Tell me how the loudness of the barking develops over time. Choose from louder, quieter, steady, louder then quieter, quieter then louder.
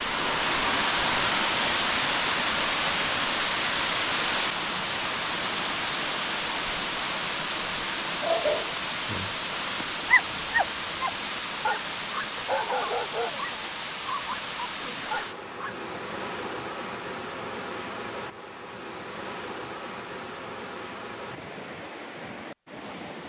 louder then quieter.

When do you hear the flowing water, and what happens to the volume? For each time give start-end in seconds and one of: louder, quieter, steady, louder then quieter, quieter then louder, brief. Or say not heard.
0.0-23.2 quieter.